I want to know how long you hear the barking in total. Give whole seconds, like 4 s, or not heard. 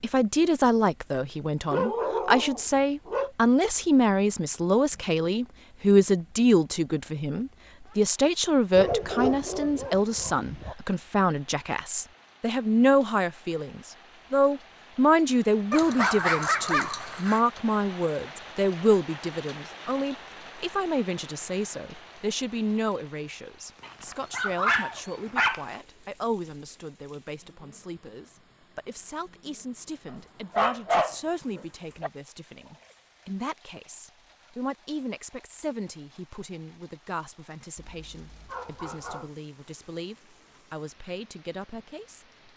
11 s.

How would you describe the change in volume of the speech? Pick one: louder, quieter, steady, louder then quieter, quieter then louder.
quieter.